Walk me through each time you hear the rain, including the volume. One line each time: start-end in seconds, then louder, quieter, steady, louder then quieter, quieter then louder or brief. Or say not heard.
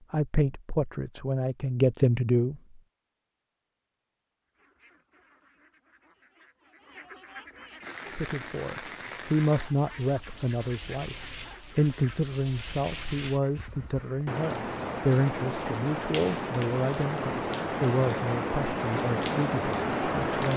7.8-20.5 louder.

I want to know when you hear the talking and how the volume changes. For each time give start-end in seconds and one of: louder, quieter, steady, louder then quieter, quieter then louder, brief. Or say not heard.
0.1-2.8 brief
8.2-20.5 steady.